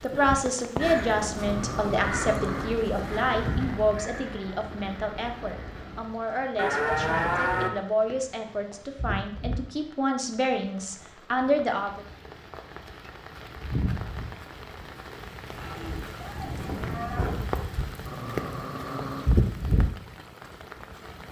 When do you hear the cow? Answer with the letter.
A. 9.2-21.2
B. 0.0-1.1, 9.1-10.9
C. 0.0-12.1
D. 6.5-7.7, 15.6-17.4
D.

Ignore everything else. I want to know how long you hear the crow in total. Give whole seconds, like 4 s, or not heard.
5 s.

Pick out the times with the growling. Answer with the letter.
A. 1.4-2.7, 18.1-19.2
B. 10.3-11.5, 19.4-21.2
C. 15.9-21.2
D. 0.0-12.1
A.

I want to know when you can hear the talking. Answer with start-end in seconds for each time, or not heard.
0.0-12.1.